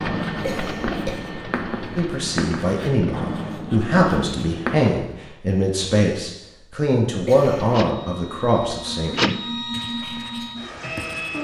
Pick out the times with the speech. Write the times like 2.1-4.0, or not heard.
1.9-9.2.